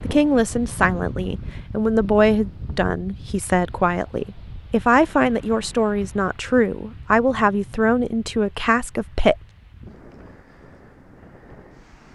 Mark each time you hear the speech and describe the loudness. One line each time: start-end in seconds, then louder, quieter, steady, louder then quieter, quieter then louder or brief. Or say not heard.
0.1-9.3 steady.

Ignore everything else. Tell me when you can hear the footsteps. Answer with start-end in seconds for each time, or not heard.
not heard.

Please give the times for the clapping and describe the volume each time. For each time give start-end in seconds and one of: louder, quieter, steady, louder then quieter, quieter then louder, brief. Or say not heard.
not heard.